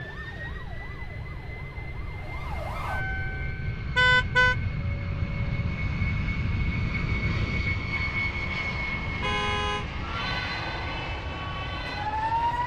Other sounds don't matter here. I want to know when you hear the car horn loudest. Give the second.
4 s.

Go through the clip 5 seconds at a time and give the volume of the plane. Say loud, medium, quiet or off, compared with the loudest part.
medium, loud, medium.